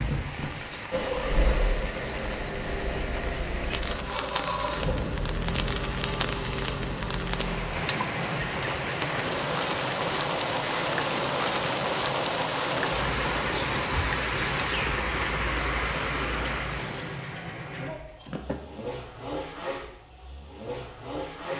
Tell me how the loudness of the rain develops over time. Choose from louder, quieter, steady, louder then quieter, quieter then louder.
louder.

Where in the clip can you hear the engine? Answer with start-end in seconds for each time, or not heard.
0.0-21.5.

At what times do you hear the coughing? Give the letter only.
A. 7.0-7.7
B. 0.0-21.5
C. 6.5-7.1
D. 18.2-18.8
D.